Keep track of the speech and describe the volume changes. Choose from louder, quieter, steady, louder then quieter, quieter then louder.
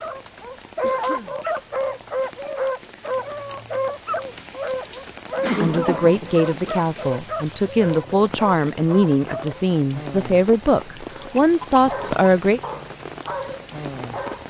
steady.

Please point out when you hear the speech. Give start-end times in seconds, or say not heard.
5.6-12.6.